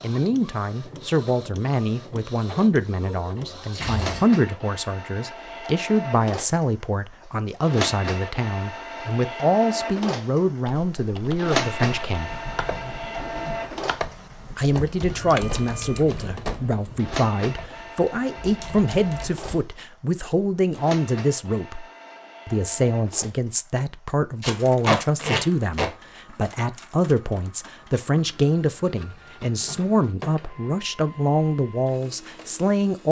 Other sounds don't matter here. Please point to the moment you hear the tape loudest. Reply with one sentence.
The volume of the tape peaks at 25 seconds.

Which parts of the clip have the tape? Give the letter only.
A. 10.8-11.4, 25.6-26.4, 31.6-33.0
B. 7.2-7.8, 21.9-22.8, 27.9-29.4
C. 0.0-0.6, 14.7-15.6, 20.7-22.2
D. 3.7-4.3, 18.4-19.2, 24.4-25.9
D.